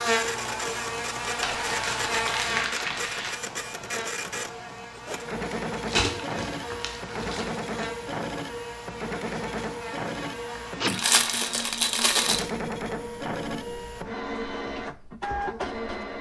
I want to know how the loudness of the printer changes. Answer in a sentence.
The loudness of the printer stays about the same.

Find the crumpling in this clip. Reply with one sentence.
The crumpling can be heard from 1.4 to 3.4 s, from 5.8 to 7.7 s and from 10.8 to 12.5 s.